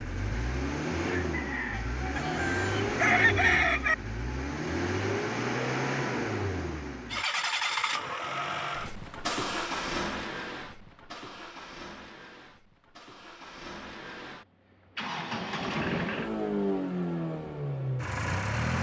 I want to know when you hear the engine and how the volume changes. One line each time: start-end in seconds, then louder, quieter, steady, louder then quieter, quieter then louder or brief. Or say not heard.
0.0-18.7 quieter then louder.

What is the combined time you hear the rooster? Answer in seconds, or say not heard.
2 s.